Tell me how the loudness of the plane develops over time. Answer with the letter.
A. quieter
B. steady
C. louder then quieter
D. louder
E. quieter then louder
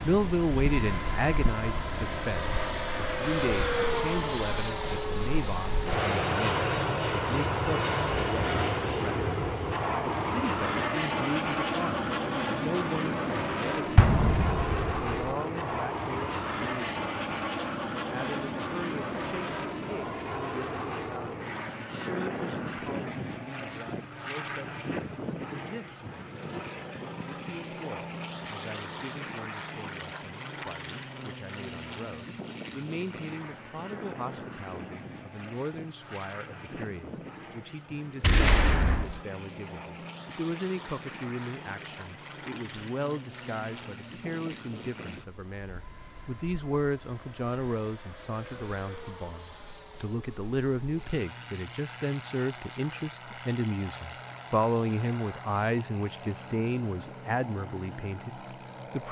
A.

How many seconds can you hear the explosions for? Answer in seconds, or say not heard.
2 s.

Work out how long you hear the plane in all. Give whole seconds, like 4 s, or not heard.
59 s.